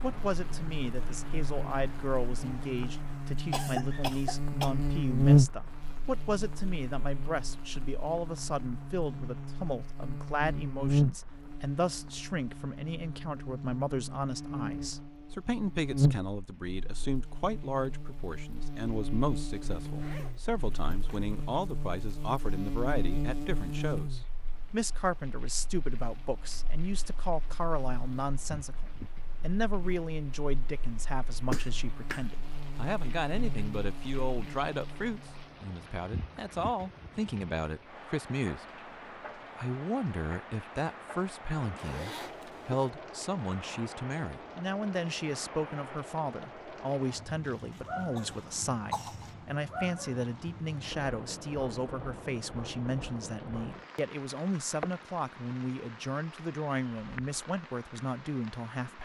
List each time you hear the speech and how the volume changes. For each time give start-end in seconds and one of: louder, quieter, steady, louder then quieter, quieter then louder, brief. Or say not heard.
0.0-59.0 steady.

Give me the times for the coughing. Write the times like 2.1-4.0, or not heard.
3.5-4.7, 31.5-32.2, 47.5-49.3.